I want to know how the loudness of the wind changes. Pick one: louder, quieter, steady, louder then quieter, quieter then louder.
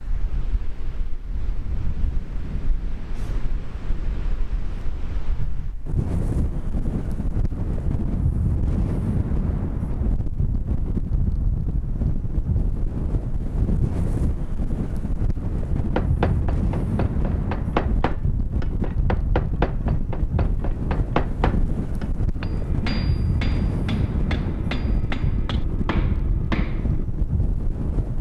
louder.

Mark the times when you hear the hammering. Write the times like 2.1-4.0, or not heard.
15.8-27.1.